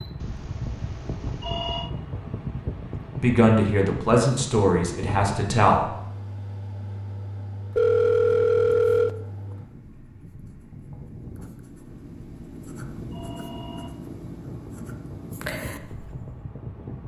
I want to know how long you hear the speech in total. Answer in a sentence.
The speech can be heard for 3 seconds in total.